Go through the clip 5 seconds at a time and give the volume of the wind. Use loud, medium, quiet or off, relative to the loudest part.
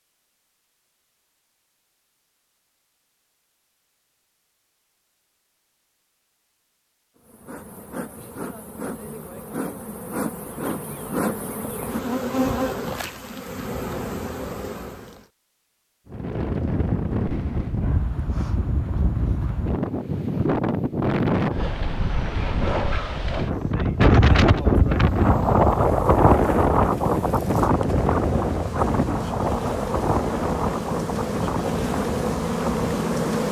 off, off, off, medium, loud, loud, medium.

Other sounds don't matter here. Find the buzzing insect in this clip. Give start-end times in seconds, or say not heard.
7.2-15.2, 25.0-33.4.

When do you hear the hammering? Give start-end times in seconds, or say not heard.
not heard.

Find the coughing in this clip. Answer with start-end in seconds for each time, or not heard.
not heard.